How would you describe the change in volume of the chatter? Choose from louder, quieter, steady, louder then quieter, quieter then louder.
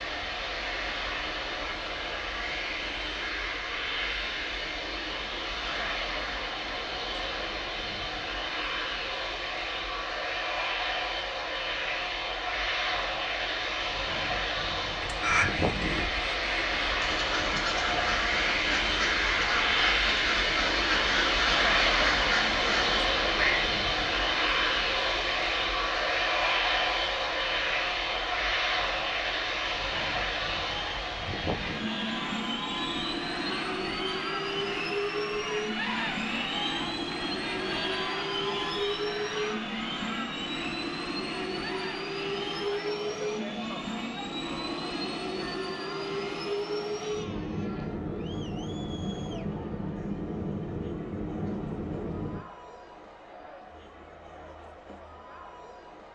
quieter.